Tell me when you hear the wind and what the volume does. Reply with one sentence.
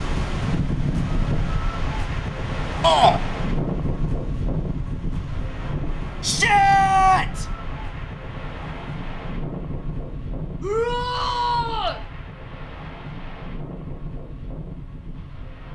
The wind can be heard from 0.0 to 15.7 s, getting quieter.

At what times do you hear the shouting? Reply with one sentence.
The shouting can be heard from 2.8 to 3.2 s, from 6.2 to 7.5 s and from 10.6 to 12.0 s.